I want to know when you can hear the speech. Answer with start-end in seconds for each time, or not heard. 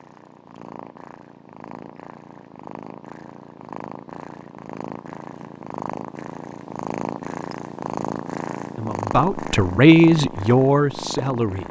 8.8-11.6.